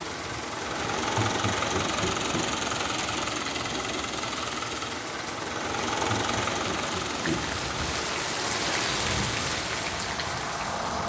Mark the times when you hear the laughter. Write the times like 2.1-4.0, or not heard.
1.1-2.5, 6.2-7.6.